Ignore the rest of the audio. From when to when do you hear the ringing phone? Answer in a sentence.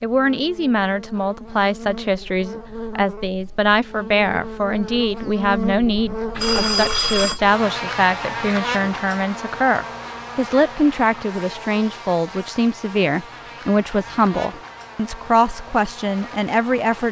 You can hear the ringing phone from 6.3 to 7.4 s.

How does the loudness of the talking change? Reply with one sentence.
The loudness of the talking stays about the same.